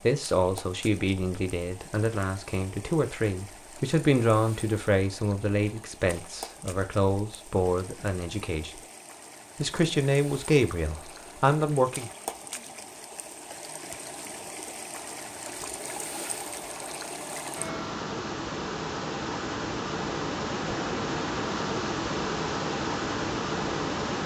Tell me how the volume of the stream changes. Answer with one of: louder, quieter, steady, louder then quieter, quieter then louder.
louder.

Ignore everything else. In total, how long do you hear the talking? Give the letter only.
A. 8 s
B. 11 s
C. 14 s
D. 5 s
B.